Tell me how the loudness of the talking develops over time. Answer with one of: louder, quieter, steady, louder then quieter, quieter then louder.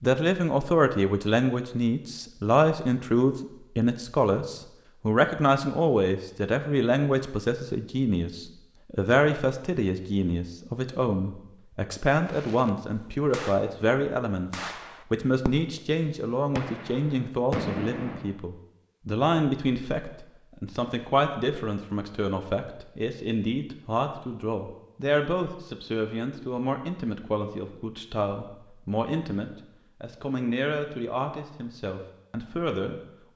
quieter.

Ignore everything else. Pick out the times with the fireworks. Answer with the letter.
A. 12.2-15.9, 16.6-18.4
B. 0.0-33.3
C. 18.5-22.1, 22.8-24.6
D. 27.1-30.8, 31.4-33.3
A.